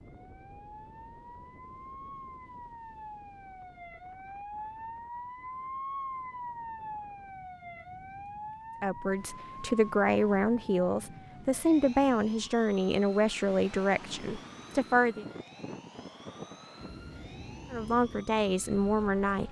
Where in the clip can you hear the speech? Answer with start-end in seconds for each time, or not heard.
8.8-15.2, 17.7-19.4.